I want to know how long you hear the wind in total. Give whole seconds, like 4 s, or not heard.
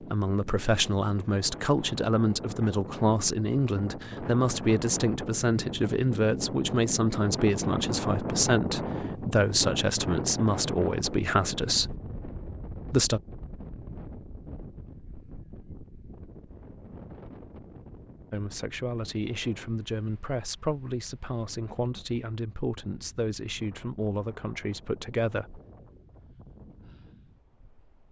28 s.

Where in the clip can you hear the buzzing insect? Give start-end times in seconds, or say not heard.
not heard.